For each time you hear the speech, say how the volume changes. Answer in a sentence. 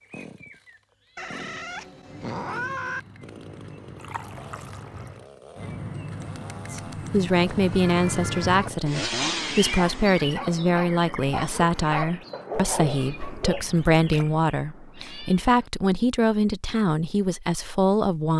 You can hear the speech from 6.7 to 18.3 s, at a steady volume.